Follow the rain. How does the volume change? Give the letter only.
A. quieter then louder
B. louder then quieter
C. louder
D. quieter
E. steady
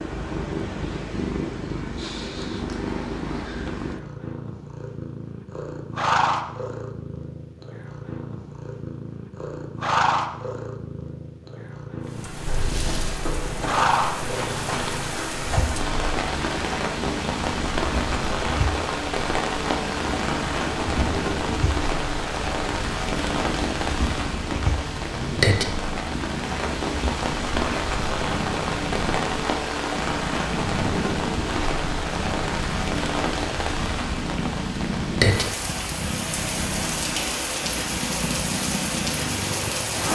E.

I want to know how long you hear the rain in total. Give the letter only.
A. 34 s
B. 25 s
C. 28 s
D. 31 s
C.